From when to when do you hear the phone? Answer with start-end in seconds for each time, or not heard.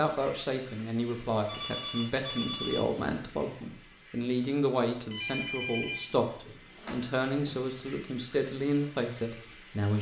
1.4-2.9, 5.1-7.0.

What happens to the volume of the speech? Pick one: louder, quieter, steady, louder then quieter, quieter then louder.
steady.